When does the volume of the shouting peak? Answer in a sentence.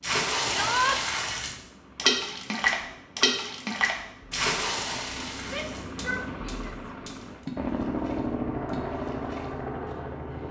The loudest moment of the shouting is at 1 second.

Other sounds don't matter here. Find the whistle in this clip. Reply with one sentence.
The whistle can't be heard in this clip.